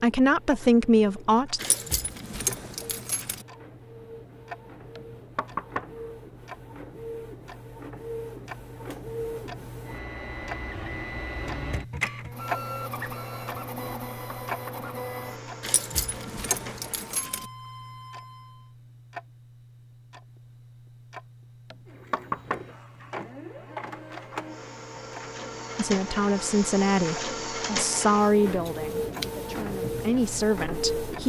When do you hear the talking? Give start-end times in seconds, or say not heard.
0.0-1.6, 25.8-31.2.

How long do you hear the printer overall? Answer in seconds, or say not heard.
28 s.